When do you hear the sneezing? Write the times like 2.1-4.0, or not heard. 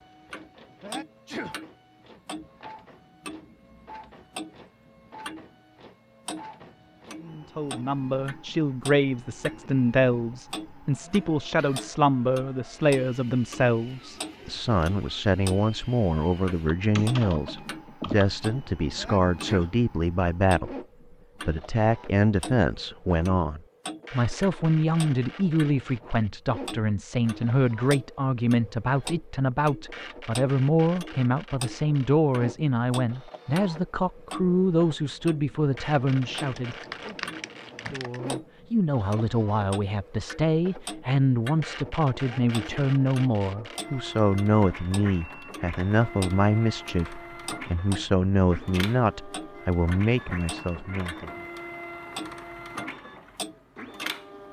0.8-1.6, 18.9-19.8, 42.2-42.8.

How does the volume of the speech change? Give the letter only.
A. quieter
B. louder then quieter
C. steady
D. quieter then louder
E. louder
C.